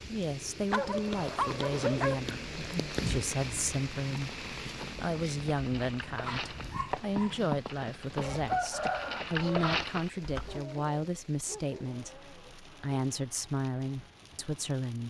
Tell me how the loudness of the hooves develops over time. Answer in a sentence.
The loudness of the hooves goes up.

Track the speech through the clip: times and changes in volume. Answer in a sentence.
You can hear the speech from 0.1 to 15.0 s, at a steady volume.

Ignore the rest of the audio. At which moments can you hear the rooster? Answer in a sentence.
You can hear the rooster from 8.2 to 9.7 s.